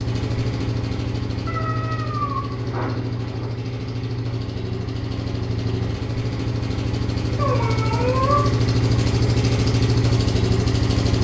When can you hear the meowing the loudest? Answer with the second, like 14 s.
8 s.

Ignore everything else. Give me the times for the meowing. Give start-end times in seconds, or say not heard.
1.4-3.5, 7.3-8.6.